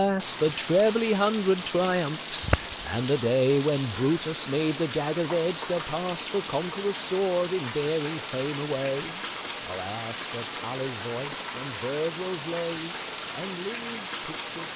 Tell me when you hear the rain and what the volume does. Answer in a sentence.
You can hear the rain from 0.0 to 14.7 s, at a steady volume.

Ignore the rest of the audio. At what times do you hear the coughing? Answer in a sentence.
You can hear the coughing from 2.4 to 2.9 s.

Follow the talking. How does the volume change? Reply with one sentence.
The loudness of the talking goes down.